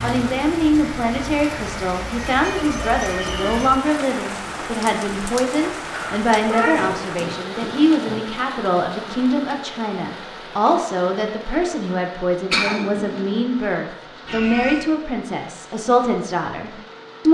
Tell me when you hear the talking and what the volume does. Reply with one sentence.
The talking can be heard from 0.0 to 17.3 s, at a steady volume.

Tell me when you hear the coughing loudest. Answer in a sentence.
The loudest moment of the coughing is at 13 seconds.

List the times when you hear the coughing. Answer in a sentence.
The coughing can be heard from 2.6 to 3.5 s, from 6.8 to 8.2 s and from 12.5 to 13.2 s.